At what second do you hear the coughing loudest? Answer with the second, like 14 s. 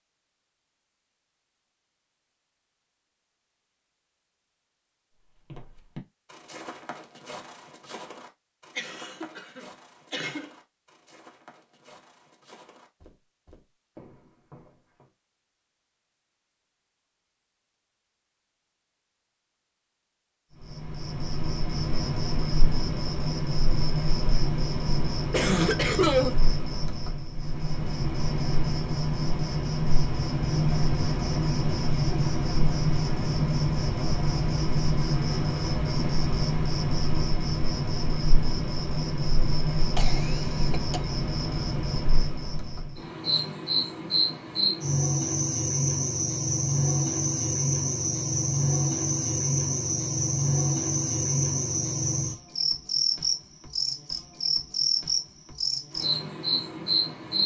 26 s.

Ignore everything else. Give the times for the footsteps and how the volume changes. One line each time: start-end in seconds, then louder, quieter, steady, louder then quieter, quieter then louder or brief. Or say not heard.
5.3-15.1 quieter.